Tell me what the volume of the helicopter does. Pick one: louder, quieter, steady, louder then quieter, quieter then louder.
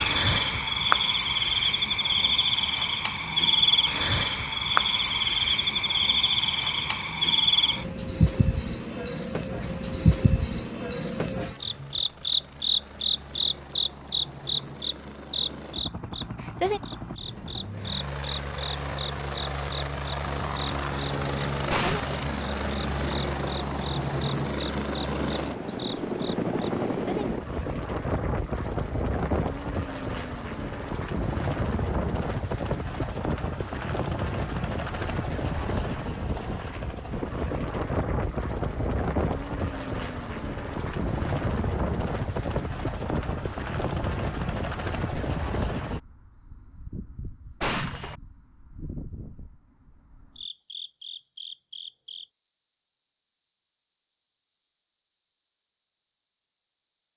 louder.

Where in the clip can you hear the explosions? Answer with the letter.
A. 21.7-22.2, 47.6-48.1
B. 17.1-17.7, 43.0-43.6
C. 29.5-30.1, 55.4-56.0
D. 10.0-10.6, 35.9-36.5
A.